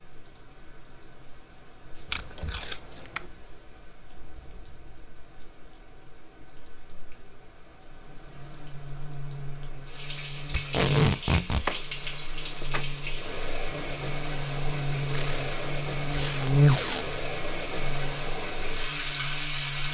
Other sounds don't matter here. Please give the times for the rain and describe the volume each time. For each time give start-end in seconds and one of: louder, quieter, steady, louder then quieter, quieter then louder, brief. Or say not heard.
0.0-19.8 louder.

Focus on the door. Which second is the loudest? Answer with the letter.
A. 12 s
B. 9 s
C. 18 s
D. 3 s
A.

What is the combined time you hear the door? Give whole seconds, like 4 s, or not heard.
3 s.